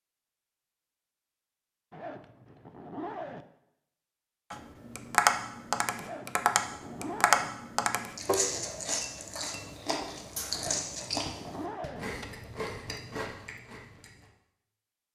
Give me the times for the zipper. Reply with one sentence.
You can hear the zipper from 1.9 to 3.5 s, from 6.0 to 7.5 s and from 10.5 to 12.1 s.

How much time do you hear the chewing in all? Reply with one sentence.
The chewing can be heard for 6 seconds in total.